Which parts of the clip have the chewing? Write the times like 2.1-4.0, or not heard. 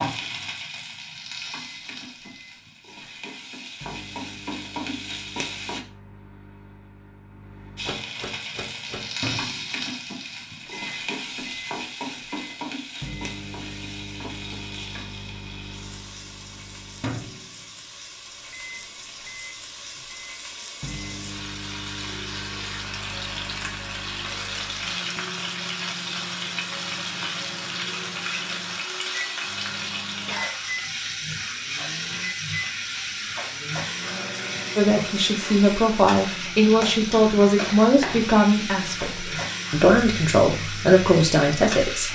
not heard.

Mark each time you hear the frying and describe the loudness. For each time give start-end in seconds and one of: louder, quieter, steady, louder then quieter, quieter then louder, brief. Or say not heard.
0.0-5.8 quieter then louder
7.8-42.1 quieter then louder.